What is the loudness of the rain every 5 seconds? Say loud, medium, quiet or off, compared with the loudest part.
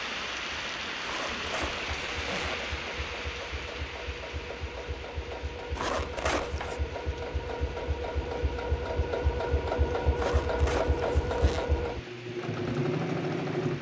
loud, medium, medium.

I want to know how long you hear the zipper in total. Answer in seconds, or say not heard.
4 s.